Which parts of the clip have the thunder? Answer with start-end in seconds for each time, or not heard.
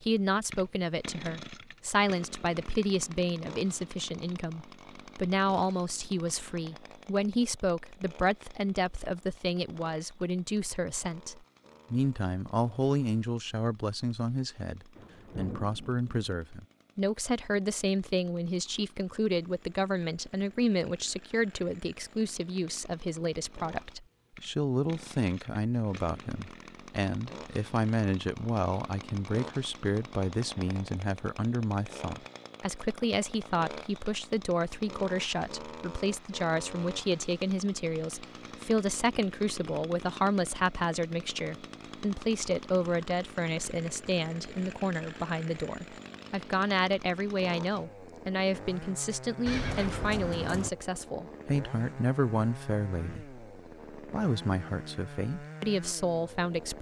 14.9-16.4.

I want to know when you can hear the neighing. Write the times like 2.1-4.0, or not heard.
49.5-50.7.